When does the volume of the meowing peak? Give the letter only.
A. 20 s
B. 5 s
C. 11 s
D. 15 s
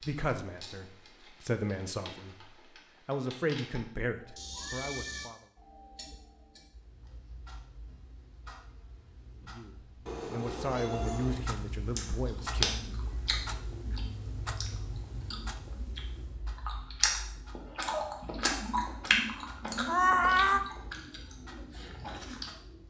A.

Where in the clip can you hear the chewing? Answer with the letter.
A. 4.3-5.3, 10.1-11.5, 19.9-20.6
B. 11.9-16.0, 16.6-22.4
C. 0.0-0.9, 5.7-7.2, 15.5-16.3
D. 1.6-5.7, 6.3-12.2
B.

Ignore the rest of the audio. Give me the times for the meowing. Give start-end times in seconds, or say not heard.
4.3-5.3, 10.1-11.5, 19.9-20.6.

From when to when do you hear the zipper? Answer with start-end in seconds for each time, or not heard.
not heard.